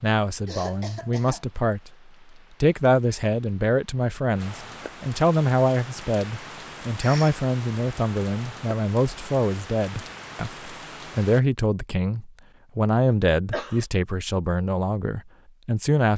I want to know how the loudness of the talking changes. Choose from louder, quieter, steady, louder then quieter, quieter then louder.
steady.